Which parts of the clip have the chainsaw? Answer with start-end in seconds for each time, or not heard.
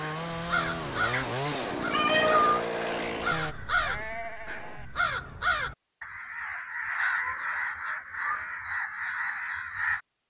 0.0-3.5.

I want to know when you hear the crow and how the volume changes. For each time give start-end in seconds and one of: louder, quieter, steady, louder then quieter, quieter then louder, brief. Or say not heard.
0.0-10.0 steady.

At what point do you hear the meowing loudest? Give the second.
2 s.